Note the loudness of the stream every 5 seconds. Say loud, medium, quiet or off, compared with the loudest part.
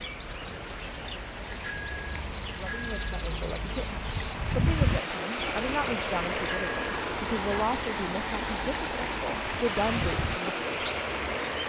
medium, loud, loud.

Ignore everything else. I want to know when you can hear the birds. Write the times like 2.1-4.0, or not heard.
0.0-11.6.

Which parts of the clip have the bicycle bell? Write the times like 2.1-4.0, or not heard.
1.4-3.2, 6.3-7.7.